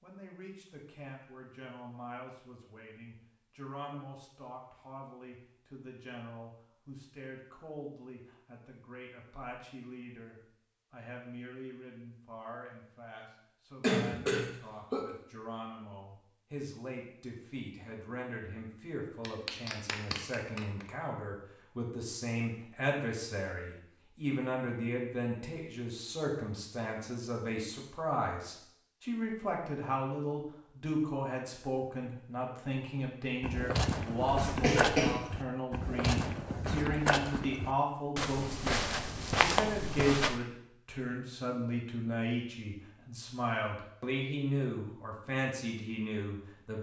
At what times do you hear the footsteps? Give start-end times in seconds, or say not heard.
33.4-40.4.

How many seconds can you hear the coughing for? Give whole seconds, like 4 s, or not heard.
2 s.